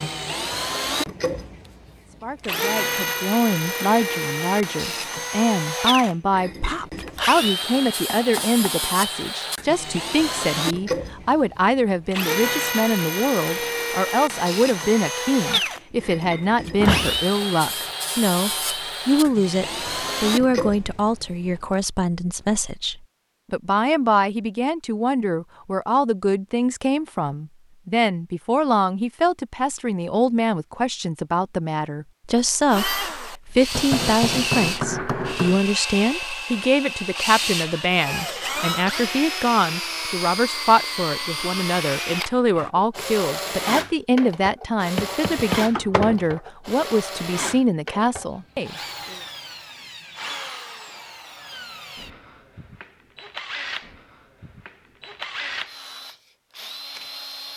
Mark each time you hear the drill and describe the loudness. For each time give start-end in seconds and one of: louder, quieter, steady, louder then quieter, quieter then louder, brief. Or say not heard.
0.0-21.3 steady
32.7-57.5 quieter.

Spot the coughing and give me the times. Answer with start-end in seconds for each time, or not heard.
not heard.